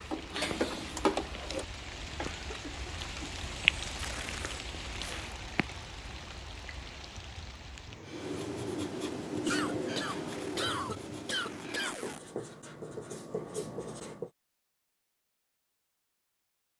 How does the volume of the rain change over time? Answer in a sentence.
The volume of the rain goes up, then down.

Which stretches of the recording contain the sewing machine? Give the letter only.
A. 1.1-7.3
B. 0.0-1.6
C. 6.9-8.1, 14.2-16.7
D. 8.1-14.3
B.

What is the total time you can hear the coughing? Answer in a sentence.
You can hear the coughing for 4 seconds altogether.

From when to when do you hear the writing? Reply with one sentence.
You can hear the writing from 8.1 to 14.3 s.